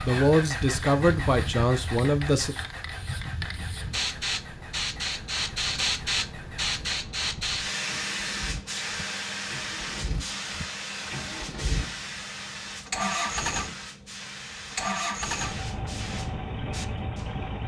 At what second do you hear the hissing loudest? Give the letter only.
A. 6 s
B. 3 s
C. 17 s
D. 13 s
A.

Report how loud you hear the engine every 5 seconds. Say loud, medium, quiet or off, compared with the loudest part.
medium, quiet, loud, loud.